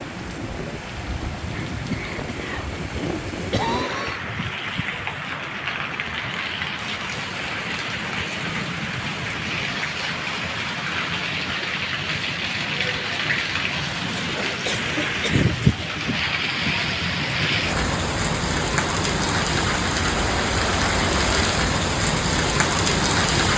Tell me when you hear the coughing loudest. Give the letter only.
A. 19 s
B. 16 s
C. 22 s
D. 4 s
D.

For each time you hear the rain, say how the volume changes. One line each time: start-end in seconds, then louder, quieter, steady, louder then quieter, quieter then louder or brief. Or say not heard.
0.0-23.5 louder.